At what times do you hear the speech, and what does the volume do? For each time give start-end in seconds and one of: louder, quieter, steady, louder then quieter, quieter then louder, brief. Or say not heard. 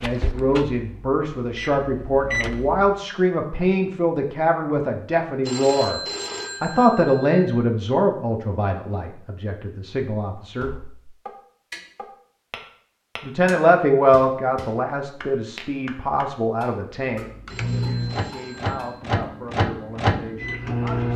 0.0-6.0 steady
6.6-10.7 quieter then louder
13.2-21.1 quieter.